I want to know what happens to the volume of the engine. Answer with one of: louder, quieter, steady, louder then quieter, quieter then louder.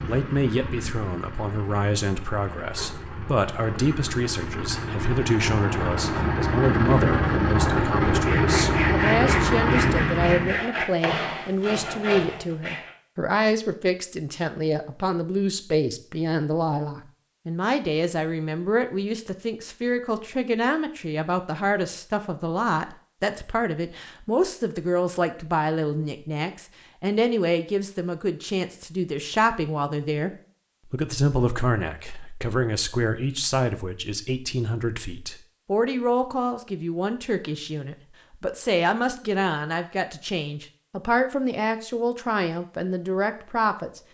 louder.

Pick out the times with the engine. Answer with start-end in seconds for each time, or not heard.
0.0-10.6.